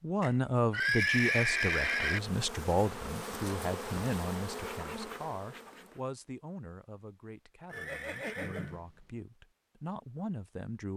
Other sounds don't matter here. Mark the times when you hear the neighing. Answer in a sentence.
The neighing can be heard from 0.2 to 2.2 s and from 7.7 to 8.9 s.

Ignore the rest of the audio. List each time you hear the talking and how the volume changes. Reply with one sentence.
The talking can be heard from 0.0 to 10.9 s, getting quieter then louder.